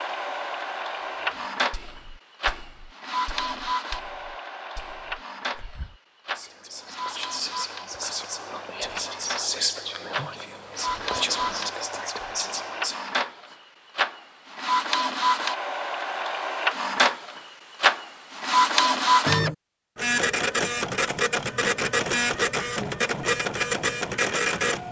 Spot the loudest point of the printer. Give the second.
19 s.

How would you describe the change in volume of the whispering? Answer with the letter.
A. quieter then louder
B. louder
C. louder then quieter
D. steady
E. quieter
B.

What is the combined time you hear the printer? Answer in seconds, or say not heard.
25 s.